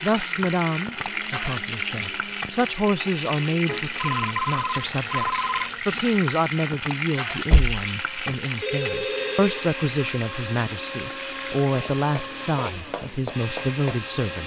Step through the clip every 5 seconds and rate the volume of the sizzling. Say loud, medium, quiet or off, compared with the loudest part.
loud, loud, medium.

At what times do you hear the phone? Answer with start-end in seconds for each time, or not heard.
3.6-5.7, 8.6-9.7.